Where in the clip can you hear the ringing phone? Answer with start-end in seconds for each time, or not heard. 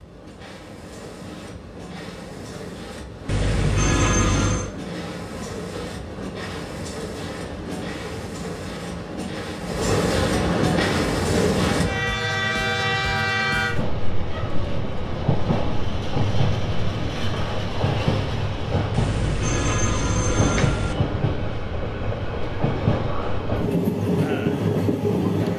3.2-4.7, 18.9-20.9.